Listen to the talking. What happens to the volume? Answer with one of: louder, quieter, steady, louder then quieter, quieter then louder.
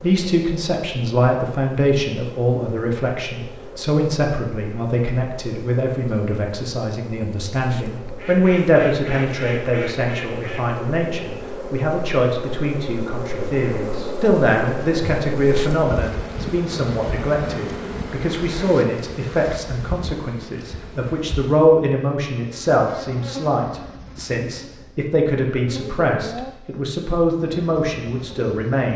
steady.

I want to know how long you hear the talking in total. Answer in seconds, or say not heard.
29 s.